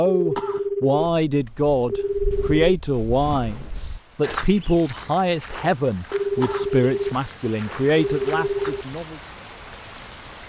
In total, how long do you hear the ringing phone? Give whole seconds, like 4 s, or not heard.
4 s.